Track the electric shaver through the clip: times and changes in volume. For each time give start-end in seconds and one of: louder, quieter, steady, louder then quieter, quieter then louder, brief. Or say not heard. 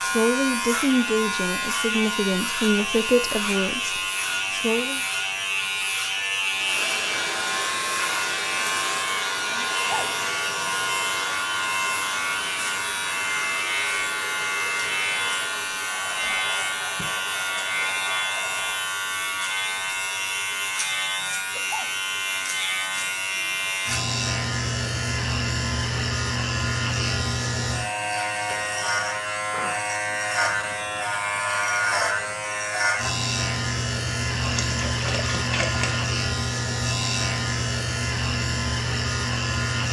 0.0-39.8 steady.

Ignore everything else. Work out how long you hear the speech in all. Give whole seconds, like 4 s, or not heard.
5 s.